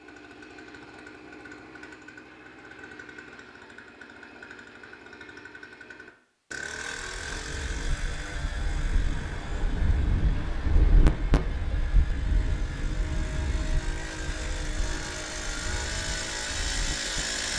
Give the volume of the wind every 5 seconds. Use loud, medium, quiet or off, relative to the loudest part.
off, medium, loud, medium.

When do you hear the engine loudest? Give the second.
17 s.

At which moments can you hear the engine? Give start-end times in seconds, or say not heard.
0.0-17.5.